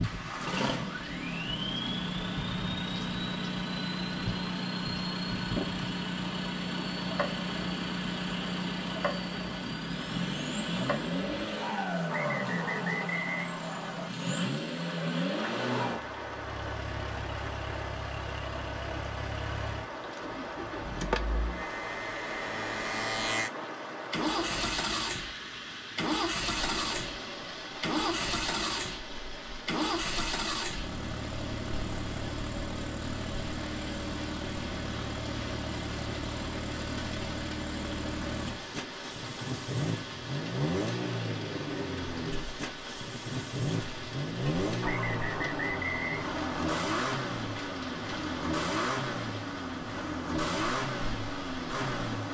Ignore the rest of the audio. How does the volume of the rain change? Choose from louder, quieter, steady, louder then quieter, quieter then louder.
steady.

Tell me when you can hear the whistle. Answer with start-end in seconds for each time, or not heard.
12.1-14.1, 44.8-46.8.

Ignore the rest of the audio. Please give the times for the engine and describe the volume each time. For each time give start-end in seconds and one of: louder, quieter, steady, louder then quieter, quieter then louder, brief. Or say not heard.
0.0-52.2 steady.